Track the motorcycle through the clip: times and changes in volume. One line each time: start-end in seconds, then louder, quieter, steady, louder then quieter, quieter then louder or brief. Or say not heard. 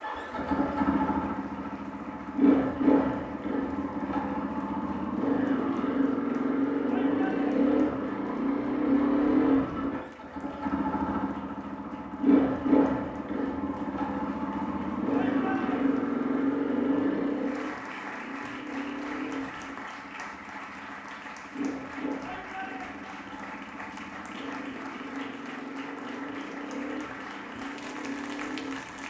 0.0-29.0 quieter.